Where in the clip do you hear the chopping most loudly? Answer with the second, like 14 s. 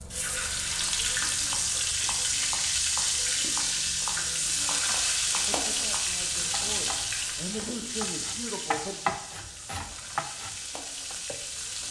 9 s.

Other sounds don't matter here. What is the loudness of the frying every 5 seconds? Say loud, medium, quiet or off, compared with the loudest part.
loud, loud, medium.